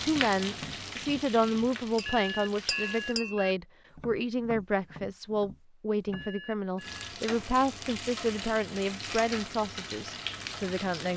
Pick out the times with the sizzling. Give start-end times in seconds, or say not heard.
0.0-3.2, 6.8-11.1.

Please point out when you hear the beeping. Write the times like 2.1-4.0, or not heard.
2.0-3.5, 6.1-7.0.